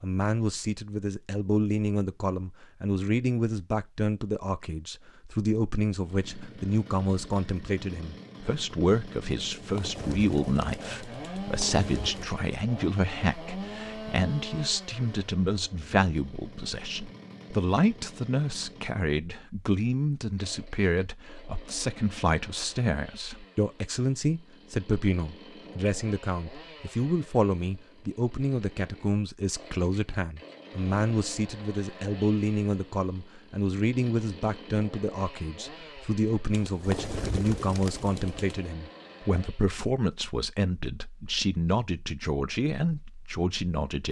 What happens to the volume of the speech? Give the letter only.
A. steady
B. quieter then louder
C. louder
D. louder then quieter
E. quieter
A.